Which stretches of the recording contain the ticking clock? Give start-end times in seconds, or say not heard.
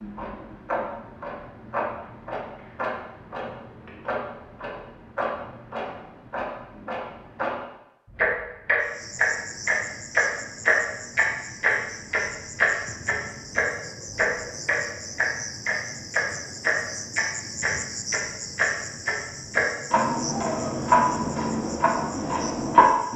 0.0-23.1.